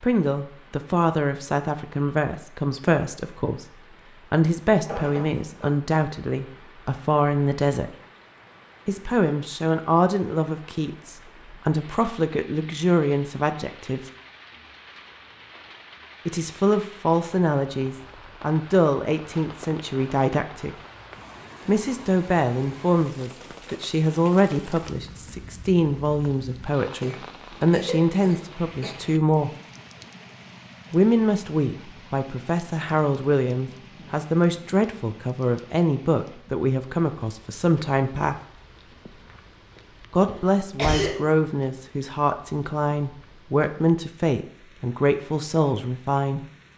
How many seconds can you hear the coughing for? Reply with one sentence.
You can hear the coughing for 4 seconds altogether.